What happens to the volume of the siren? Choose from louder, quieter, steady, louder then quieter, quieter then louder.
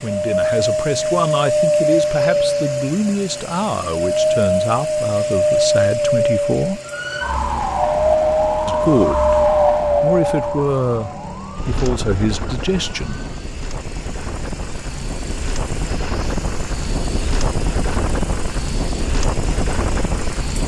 quieter.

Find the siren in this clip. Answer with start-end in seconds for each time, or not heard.
6.8-13.5.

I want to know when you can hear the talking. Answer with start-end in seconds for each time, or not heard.
0.0-6.8, 8.7-13.2.